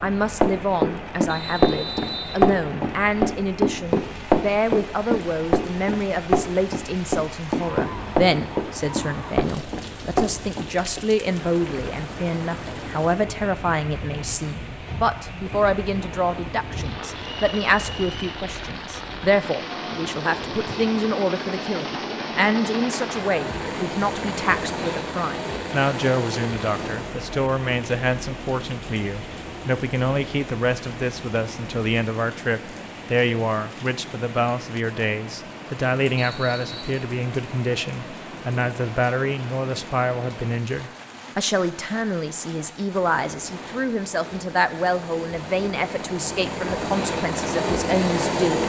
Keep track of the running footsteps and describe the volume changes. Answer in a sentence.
The volume of the running footsteps goes down.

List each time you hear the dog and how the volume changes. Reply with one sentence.
The dog can't be heard in this clip.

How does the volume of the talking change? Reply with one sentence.
The loudness of the talking stays about the same.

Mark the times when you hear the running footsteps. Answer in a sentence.
The running footsteps can be heard from 0.0 to 11.1 s.